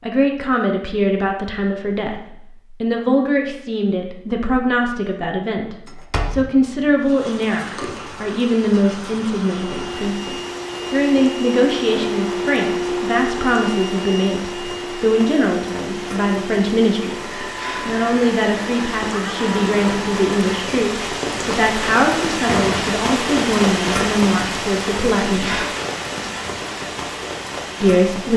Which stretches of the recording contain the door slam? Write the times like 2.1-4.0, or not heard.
5.8-6.8, 22.4-22.9.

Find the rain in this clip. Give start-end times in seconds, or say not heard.
7.0-28.3.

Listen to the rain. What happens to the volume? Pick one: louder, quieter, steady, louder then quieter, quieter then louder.
louder.